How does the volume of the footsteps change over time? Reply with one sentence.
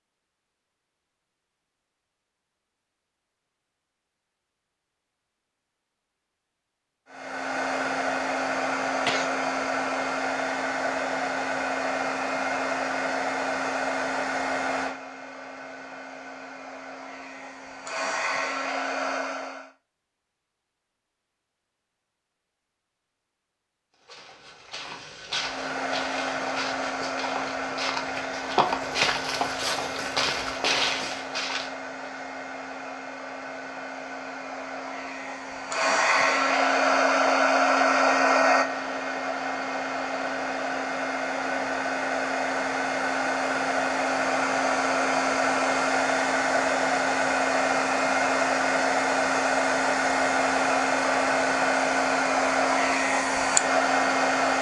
The volume of the footsteps goes up.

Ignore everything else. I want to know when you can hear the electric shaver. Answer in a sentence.
You can't hear the electric shaver here.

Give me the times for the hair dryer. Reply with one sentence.
You can hear the hair dryer from 7.2 to 19.7 s and from 25.4 to 54.5 s.